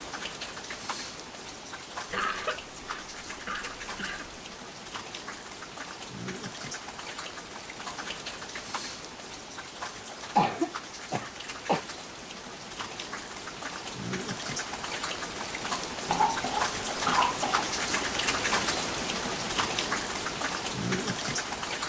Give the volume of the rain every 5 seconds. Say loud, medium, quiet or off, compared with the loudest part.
medium, medium, medium, loud, loud.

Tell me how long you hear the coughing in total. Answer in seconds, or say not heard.
5 s.